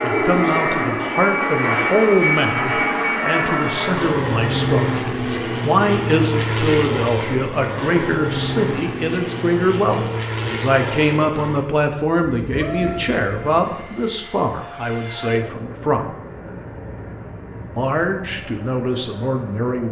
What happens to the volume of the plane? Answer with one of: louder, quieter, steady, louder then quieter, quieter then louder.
quieter.